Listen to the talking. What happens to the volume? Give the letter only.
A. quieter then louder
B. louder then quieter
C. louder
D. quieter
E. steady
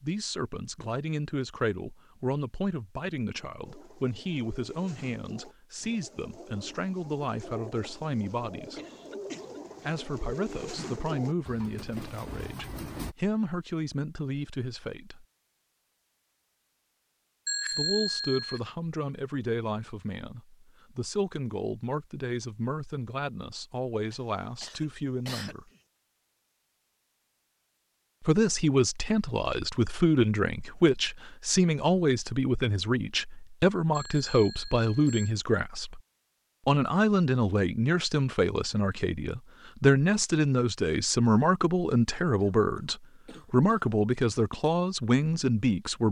C.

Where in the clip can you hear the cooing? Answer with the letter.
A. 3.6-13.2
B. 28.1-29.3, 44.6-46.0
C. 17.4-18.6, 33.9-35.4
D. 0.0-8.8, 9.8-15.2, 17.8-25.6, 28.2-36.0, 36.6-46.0
A.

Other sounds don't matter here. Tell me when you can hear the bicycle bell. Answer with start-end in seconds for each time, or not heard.
17.4-18.6, 33.9-35.4.